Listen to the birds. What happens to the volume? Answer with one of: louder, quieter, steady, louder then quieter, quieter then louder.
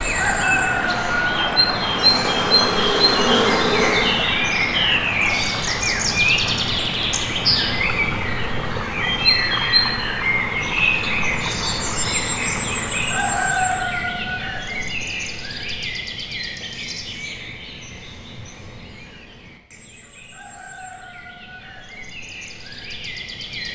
quieter.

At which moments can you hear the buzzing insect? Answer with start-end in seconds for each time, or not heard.
1.9-4.3.